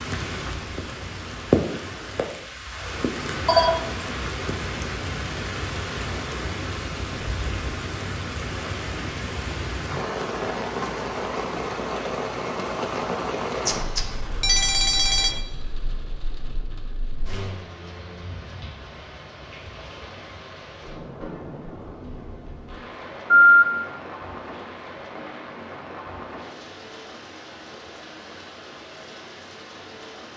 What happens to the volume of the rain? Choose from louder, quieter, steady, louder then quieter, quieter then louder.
quieter.